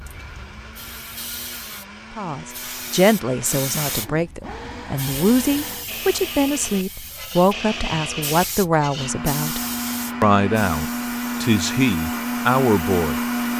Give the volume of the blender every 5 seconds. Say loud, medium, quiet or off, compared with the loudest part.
quiet, medium, loud.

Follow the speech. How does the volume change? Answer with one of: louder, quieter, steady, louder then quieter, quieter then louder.
steady.